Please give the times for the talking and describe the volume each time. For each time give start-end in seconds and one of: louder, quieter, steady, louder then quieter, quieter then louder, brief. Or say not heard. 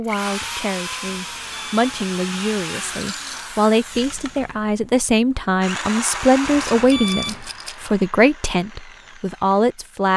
0.0-10.1 louder.